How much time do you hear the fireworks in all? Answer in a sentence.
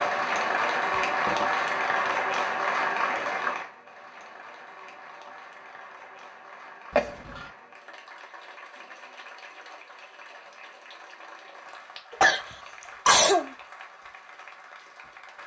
You can't hear the fireworks here.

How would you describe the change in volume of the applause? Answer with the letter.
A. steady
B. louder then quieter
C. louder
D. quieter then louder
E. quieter
E.